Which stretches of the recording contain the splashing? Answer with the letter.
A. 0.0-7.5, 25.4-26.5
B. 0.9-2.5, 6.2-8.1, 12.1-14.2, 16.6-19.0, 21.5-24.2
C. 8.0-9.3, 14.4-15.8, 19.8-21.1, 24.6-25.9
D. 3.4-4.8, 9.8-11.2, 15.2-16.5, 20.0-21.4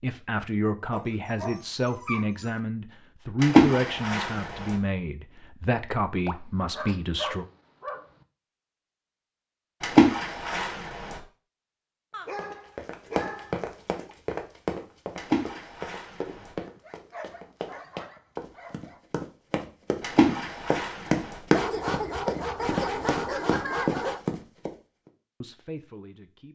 D.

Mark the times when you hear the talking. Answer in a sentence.
You can hear the talking from 0.0 to 7.5 s and from 25.4 to 26.5 s.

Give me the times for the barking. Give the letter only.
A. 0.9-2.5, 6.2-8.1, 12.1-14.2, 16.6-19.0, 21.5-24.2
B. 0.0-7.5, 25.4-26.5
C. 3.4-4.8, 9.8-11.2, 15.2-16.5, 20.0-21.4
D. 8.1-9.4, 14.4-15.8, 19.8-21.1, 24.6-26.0
A.